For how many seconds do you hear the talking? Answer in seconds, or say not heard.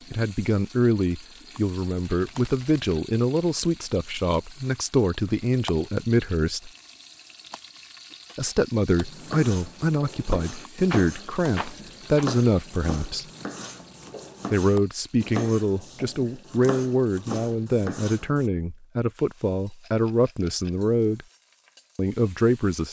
19 s.